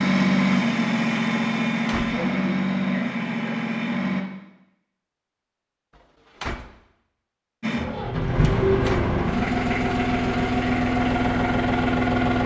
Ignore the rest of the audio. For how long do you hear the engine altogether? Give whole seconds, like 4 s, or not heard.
9 s.